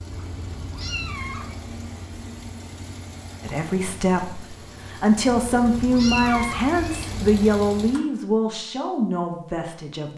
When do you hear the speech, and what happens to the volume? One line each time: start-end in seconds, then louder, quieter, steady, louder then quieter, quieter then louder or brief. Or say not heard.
3.4-10.1 louder then quieter.